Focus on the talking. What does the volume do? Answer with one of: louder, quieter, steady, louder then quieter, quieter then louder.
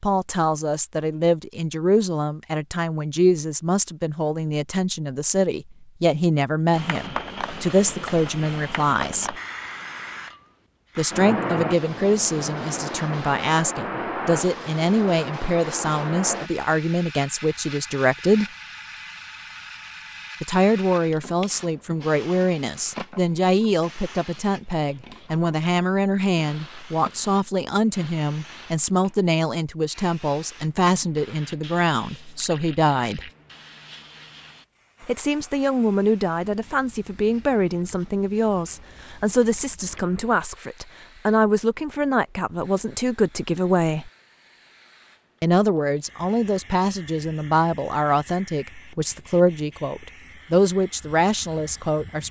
steady.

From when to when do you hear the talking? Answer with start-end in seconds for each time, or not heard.
0.0-9.3, 10.9-18.5, 20.4-33.3, 35.0-44.1, 45.4-52.2.